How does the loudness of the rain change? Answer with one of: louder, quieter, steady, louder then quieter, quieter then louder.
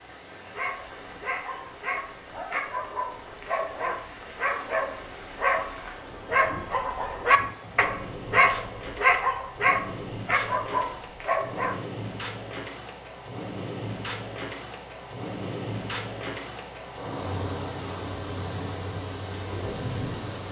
louder.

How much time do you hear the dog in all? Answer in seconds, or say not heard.
11 s.